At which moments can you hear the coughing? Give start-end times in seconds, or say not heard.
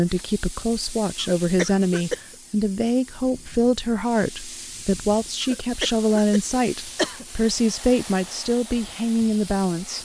1.2-2.4, 5.4-7.2.